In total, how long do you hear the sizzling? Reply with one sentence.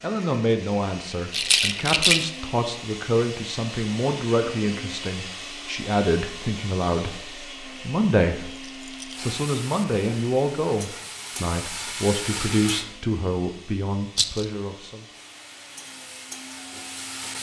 You can hear the sizzling for 6 seconds altogether.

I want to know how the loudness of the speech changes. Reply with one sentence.
The volume of the speech stays about the same.